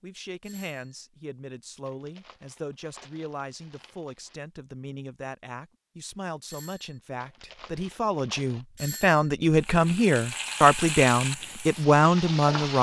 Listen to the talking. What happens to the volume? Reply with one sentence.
The loudness of the talking goes up.